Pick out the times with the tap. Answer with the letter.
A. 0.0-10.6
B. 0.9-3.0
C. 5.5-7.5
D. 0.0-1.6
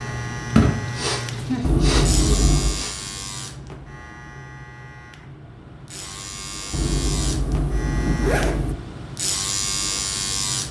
D.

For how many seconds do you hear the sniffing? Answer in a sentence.
The sniffing can be heard for 2 seconds in total.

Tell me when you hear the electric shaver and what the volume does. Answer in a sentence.
You can hear the electric shaver from 0.0 to 10.6 s, getting quieter then louder.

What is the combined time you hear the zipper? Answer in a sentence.
The zipper can be heard for 3 seconds in total.